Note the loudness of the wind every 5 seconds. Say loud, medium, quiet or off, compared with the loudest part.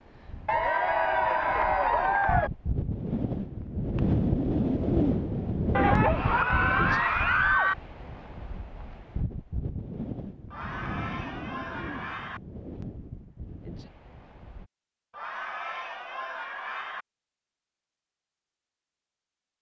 loud, loud, medium, off.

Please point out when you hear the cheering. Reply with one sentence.
The cheering can be heard from 0.5 to 2.5 s, from 5.8 to 7.8 s, from 10.5 to 12.4 s and from 15.1 to 17.1 s.